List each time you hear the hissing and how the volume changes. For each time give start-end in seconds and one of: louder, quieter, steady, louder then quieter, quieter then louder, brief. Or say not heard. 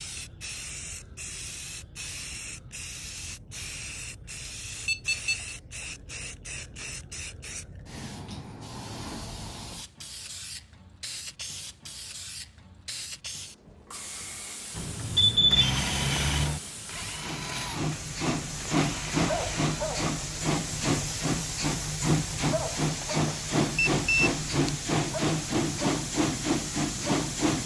0.0-27.6 louder.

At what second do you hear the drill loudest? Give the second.
16 s.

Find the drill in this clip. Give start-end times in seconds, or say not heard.
14.7-20.1.